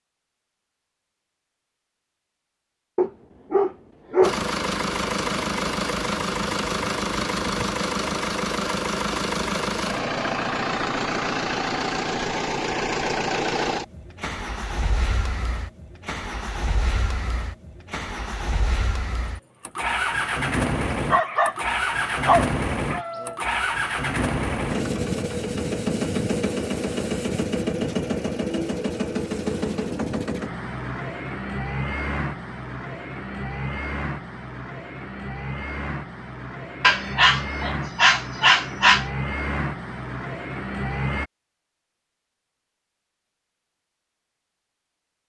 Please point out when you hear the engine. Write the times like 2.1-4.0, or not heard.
4.2-41.3.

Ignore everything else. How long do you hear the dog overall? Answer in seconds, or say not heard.
6 s.